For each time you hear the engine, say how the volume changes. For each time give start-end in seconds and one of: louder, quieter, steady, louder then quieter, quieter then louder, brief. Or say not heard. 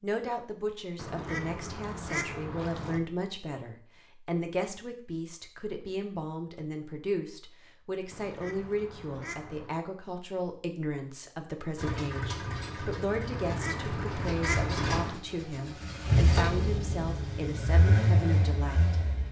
11.8-19.2 louder.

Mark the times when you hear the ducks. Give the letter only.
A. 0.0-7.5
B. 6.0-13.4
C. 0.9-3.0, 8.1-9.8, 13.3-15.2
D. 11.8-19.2
C.